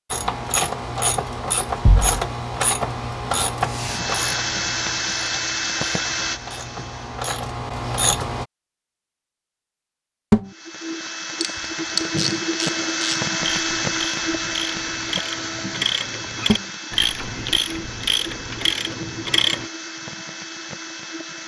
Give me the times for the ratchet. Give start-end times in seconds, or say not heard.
0.1-8.4, 11.4-19.6.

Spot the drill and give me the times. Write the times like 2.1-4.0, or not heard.
3.6-7.3, 10.4-21.4.